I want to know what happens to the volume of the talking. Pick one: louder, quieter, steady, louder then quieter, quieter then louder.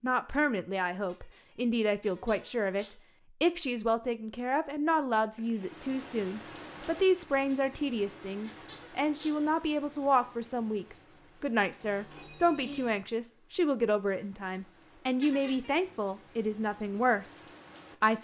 steady.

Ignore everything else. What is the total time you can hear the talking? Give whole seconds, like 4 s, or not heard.
18 s.